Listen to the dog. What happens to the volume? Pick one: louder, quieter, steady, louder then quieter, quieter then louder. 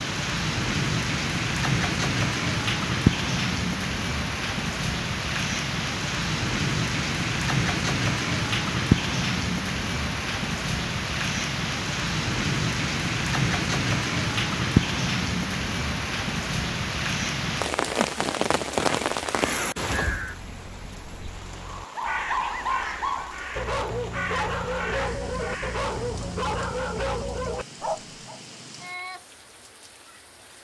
steady.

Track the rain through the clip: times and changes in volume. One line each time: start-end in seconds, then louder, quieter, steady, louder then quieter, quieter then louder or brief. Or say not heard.
0.0-30.5 quieter.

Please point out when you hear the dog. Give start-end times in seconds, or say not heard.
21.6-28.4.